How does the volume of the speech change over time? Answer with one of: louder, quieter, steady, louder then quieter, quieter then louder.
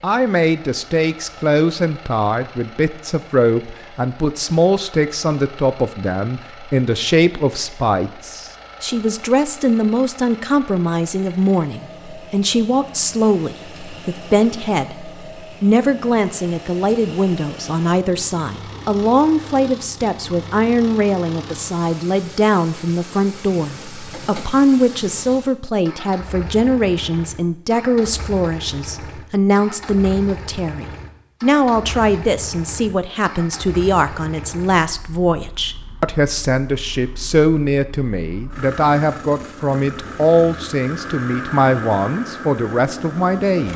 steady.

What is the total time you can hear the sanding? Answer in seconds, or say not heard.
not heard.